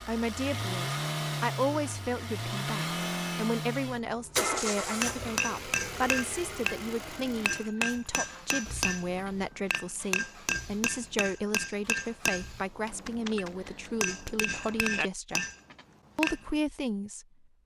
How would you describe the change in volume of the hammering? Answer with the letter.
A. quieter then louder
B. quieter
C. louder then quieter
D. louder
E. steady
E.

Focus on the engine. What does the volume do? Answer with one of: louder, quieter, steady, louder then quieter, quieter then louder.
quieter.